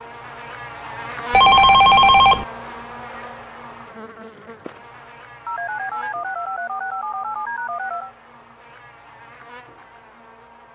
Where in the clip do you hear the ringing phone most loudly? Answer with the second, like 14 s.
2 s.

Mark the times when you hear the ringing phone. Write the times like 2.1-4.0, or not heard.
1.3-2.5, 5.5-8.2.